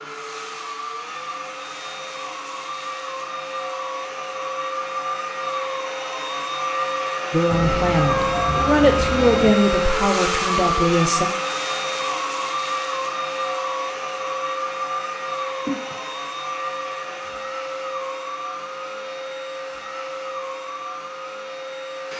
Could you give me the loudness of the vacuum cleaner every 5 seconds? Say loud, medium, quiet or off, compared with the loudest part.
medium, loud, loud, medium, medium.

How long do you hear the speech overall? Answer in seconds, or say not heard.
4 s.